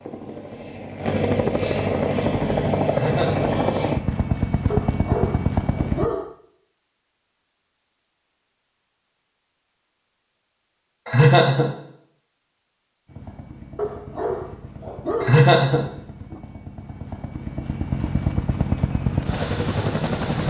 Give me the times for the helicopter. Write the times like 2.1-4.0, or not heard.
0.0-6.1, 13.1-20.4.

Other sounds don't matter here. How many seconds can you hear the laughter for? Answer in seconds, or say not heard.
2 s.